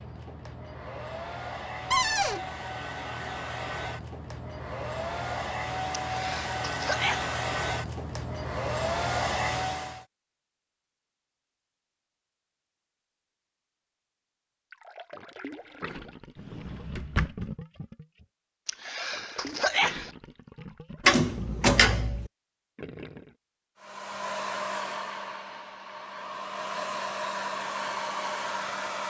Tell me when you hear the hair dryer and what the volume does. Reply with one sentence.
The hair dryer can be heard from 0.0 to 10.1 s, getting louder; and from 23.8 to 29.0 s, getting quieter then louder.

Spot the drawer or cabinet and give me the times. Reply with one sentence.
You can hear the drawer or cabinet from 1.9 to 2.4 s, from 16.4 to 17.5 s and from 21.1 to 22.2 s.